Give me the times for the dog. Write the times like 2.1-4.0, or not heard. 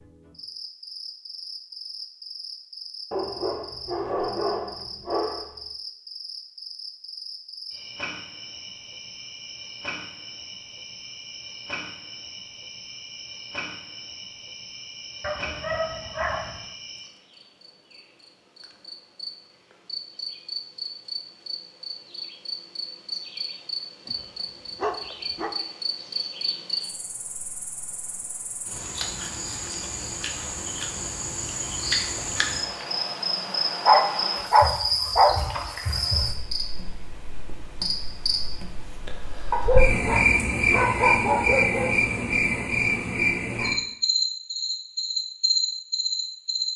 3.1-5.6, 15.2-16.6, 24.1-25.6, 33.9-35.4, 39.5-42.0.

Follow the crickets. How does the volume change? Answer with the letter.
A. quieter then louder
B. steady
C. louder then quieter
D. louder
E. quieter
D.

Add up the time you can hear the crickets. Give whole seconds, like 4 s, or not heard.
47 s.